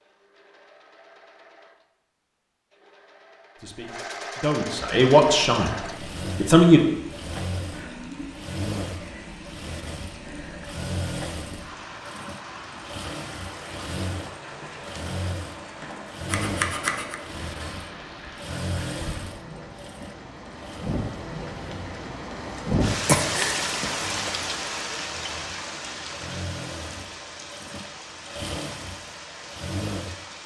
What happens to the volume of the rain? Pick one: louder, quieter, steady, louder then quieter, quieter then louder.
louder then quieter.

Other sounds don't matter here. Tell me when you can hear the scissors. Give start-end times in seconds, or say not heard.
16.2-17.1.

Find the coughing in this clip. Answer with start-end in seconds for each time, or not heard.
23.1-24.3.